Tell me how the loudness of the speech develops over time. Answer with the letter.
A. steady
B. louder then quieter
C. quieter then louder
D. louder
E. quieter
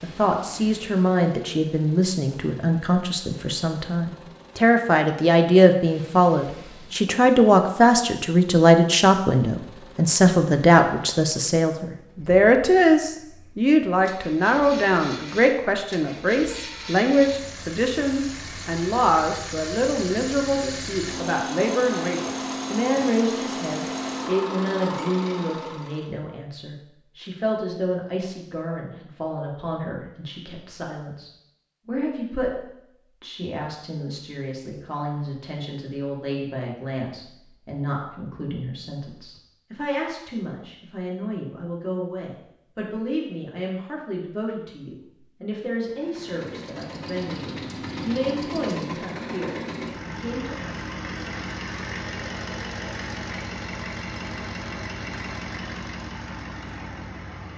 E.